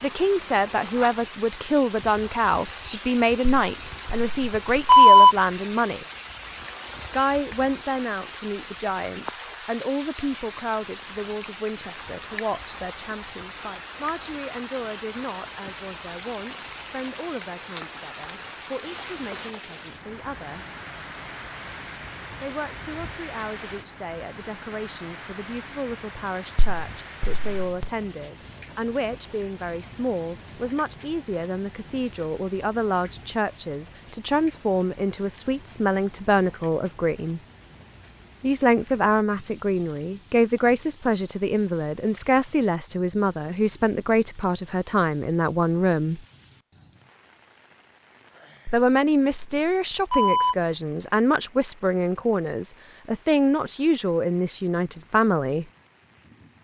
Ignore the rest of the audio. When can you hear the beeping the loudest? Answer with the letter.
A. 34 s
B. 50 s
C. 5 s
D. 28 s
C.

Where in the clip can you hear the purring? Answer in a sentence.
You can't hear the purring here.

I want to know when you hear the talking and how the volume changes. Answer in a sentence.
You can hear the talking from 0.0 to 6.0 s, at a steady volume; from 7.1 to 20.6 s, getting quieter; from 22.4 to 37.4 s, getting louder; from 38.4 to 46.2 s, at a steady volume; and from 48.7 to 55.6 s, at a steady volume.